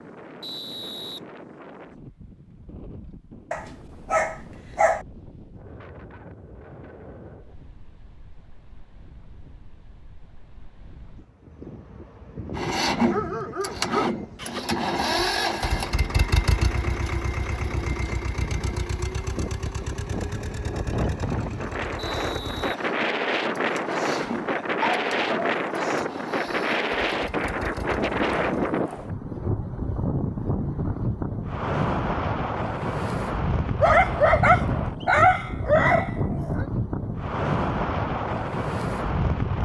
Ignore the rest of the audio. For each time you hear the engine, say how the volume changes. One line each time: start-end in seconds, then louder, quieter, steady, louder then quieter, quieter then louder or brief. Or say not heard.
12.5-28.7 quieter.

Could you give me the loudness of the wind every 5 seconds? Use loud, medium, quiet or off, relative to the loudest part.
quiet, quiet, quiet, quiet, loud, loud, loud, loud.